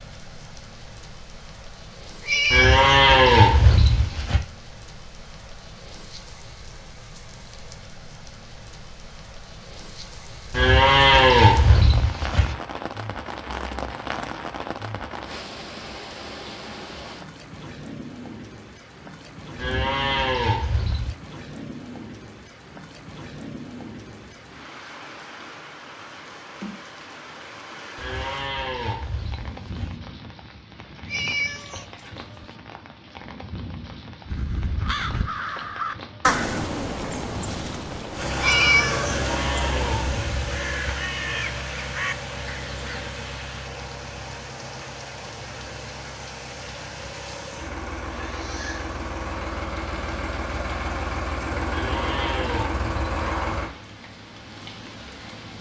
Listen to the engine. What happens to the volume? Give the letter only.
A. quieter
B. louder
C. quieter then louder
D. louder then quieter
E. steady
C.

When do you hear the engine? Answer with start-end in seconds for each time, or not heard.
38.1-53.7.